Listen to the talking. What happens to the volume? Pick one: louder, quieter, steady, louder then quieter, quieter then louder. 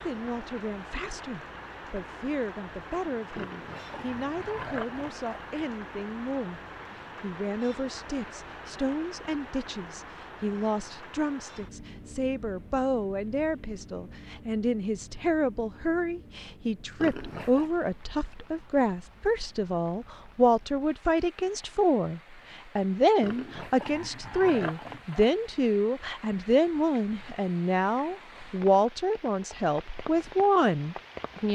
louder.